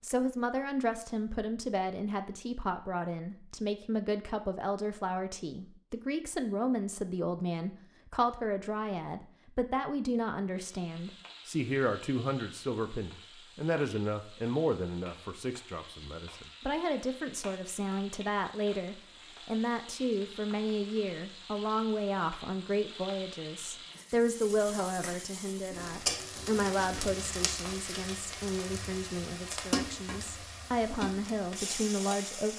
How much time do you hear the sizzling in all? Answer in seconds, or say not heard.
22 s.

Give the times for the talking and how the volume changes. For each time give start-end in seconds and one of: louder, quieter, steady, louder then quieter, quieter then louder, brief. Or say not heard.
0.0-32.5 steady.